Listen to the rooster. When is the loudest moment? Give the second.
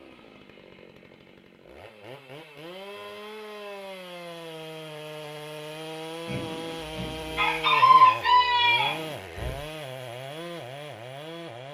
8 s.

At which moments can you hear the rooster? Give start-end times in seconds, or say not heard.
6.2-9.6.